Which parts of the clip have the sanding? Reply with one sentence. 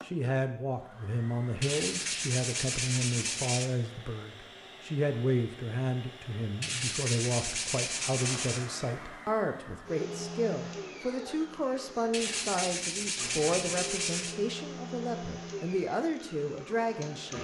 You can hear the sanding from 1.6 to 3.7 s, from 6.6 to 8.7 s and from 12.1 to 14.3 s.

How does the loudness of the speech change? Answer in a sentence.
The volume of the speech stays about the same.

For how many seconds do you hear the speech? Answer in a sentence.
The speech can be heard for 17 seconds in total.